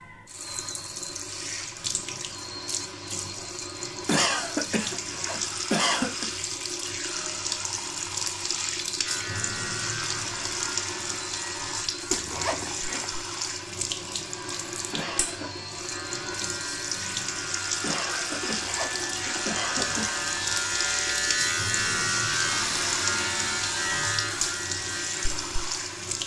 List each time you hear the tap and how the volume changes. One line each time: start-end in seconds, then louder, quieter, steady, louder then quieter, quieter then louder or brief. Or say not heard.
0.0-26.2 steady.